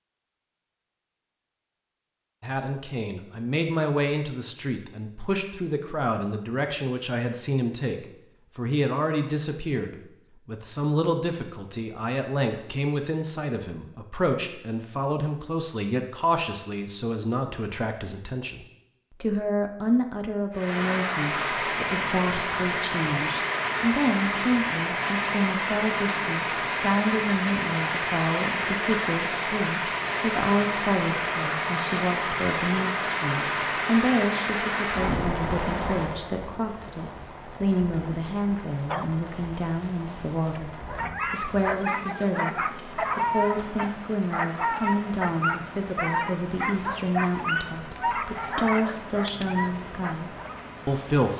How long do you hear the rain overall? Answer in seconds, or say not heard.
31 s.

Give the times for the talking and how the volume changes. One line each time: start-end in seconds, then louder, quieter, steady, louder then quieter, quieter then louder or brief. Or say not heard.
2.4-51.3 steady.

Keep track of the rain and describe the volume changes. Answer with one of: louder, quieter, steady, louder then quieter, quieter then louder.
quieter.